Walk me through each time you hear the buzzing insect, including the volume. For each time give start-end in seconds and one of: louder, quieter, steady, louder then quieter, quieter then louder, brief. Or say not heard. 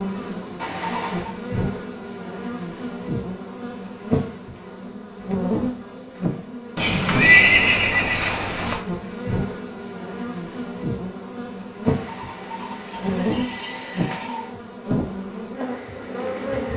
0.0-16.7 steady.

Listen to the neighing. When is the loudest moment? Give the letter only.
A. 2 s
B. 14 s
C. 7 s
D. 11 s
C.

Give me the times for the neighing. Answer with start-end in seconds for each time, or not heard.
0.6-1.3, 6.8-8.8, 11.8-14.6.